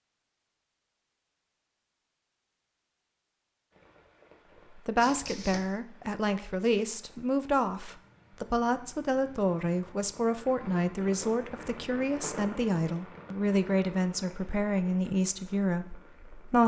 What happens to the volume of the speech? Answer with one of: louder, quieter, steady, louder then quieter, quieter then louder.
steady.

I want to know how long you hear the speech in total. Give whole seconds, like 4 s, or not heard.
12 s.